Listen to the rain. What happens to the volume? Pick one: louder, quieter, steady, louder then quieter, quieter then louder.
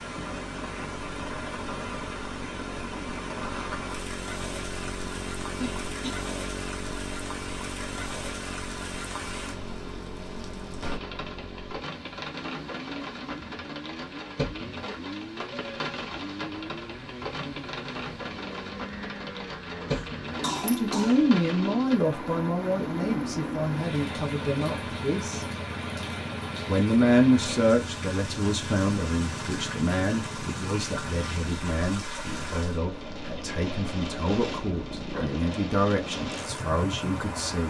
steady.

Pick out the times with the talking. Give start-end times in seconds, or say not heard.
20.6-25.4, 26.6-37.6.